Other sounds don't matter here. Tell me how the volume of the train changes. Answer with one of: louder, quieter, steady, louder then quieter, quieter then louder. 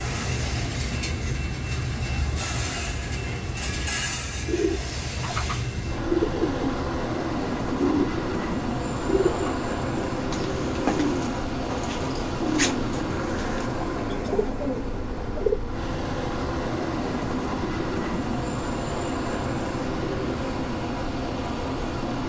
steady.